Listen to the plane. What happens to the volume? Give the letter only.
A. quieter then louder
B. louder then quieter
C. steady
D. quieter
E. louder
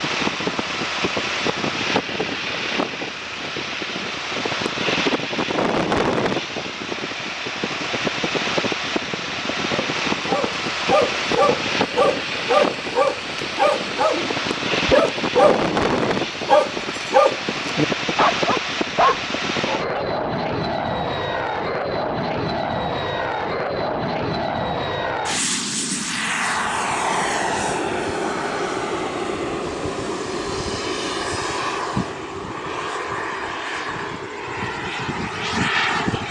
C.